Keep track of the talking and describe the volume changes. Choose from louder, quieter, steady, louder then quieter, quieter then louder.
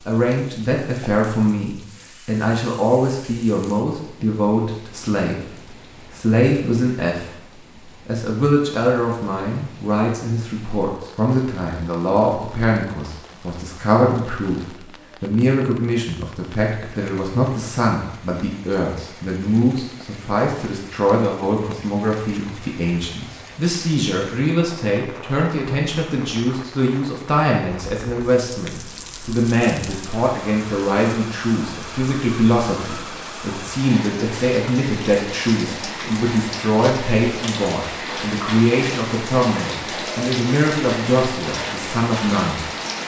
steady.